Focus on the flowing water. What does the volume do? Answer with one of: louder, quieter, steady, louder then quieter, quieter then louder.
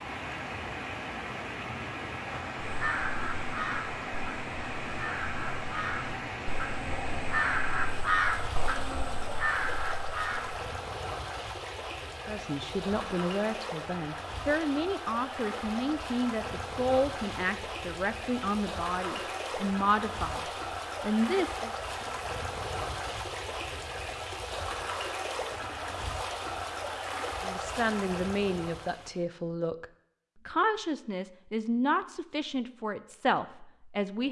steady.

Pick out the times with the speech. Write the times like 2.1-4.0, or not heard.
12.2-21.7, 27.4-29.9, 30.4-34.2.